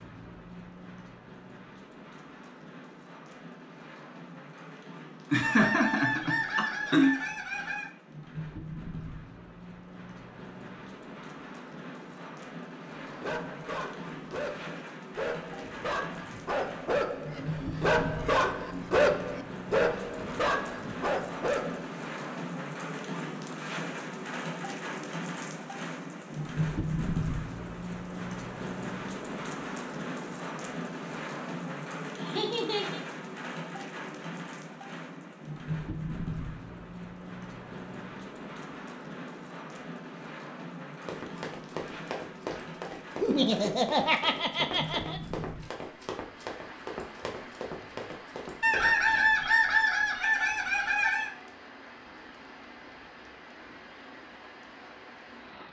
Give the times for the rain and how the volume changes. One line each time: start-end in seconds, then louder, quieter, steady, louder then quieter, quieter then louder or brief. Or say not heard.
0.0-55.6 louder then quieter.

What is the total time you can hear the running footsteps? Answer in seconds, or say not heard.
8 s.